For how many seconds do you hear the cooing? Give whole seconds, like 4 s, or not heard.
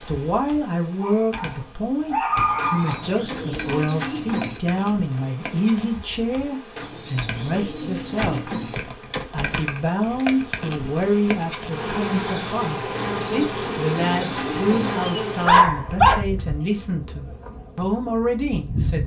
6 s.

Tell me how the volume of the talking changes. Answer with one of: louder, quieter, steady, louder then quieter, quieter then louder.
steady.